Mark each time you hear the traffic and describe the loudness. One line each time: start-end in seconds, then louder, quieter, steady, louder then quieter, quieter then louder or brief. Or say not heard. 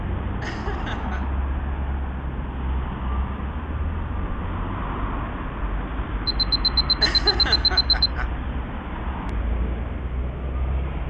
0.0-11.0 steady.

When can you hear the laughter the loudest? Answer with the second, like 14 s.
7 s.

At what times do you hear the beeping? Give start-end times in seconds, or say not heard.
6.2-8.1.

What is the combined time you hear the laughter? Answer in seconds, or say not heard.
2 s.